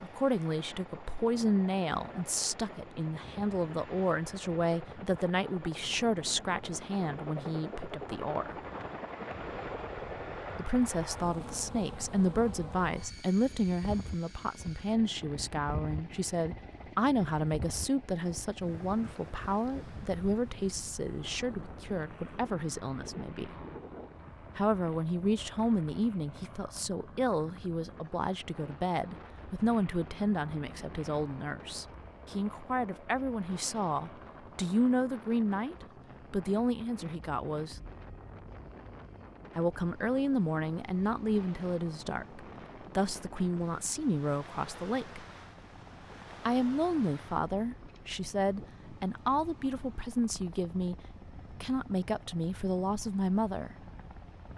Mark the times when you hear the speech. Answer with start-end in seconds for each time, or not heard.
0.0-8.6, 10.6-23.5, 24.6-37.8, 39.5-45.2, 46.5-51.0, 51.6-53.8.